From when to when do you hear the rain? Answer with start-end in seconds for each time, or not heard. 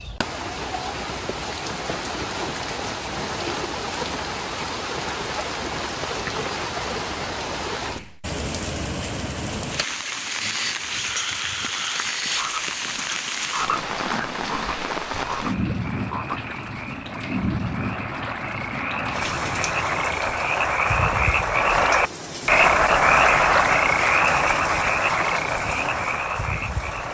0.0-27.0.